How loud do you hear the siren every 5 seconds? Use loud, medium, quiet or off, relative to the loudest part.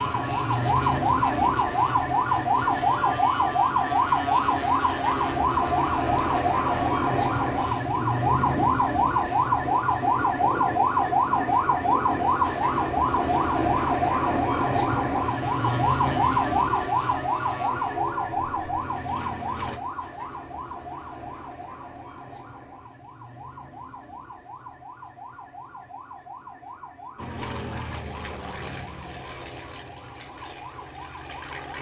loud, loud, loud, loud, quiet, quiet, quiet.